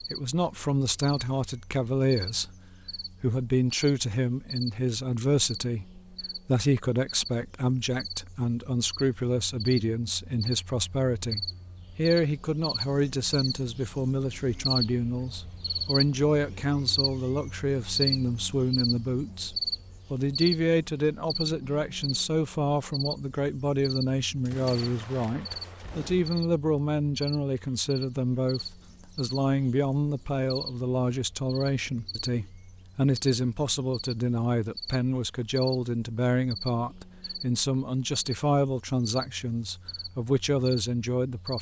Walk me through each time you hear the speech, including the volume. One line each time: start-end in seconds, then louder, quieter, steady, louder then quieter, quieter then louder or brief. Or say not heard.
0.1-2.5 brief
3.2-41.5 steady.